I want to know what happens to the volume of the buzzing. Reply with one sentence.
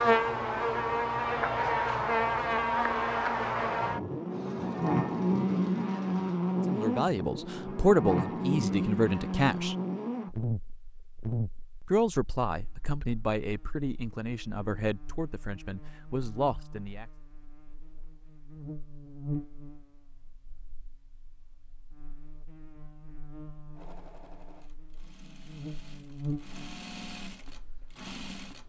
The loudness of the buzzing goes down.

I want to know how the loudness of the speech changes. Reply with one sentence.
The loudness of the speech goes down.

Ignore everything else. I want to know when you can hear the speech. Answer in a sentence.
The speech can be heard from 6.7 to 9.8 s and from 11.8 to 17.1 s.